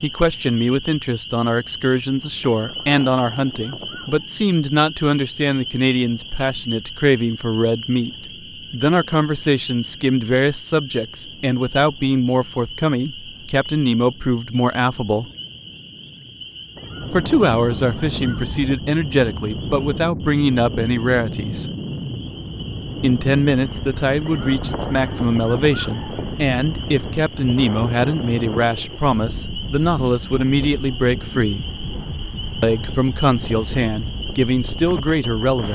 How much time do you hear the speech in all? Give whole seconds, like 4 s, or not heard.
32 s.